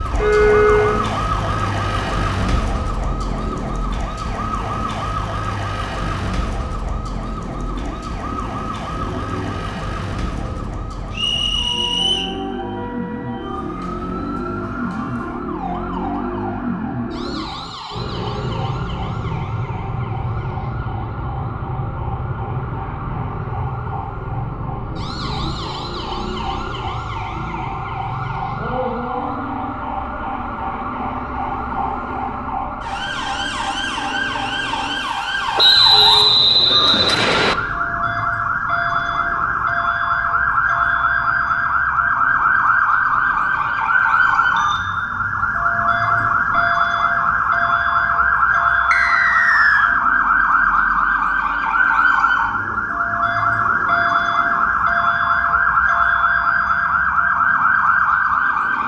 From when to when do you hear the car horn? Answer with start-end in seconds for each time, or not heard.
0.1-0.9.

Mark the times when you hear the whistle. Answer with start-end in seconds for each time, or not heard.
11.1-12.3, 35.5-37.5, 48.9-49.9.